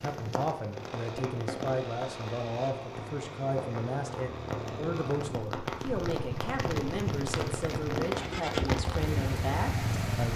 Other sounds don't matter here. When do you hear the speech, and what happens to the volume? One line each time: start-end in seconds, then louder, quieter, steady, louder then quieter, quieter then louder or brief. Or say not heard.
0.0-10.3 steady.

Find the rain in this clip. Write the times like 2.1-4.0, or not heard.
0.0-10.3.